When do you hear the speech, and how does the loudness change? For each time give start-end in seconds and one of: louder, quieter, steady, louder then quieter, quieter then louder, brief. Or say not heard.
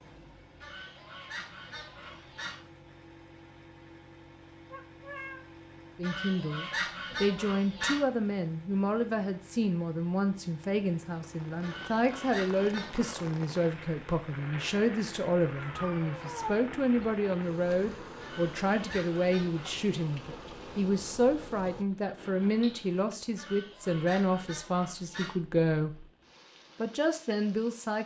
6.0-26.1 steady
26.8-28.0 brief.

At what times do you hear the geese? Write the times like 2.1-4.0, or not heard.
0.6-2.6, 6.0-8.0, 11.6-13.2, 18.2-19.9, 23.4-25.4.